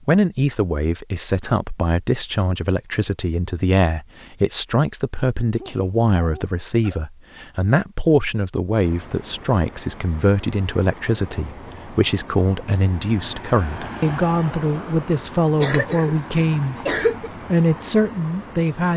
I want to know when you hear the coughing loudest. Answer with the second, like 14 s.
17 s.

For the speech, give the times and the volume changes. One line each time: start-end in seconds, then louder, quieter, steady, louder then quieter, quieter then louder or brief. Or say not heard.
0.1-16.8 steady
17.5-18.9 brief.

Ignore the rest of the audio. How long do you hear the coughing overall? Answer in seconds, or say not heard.
2 s.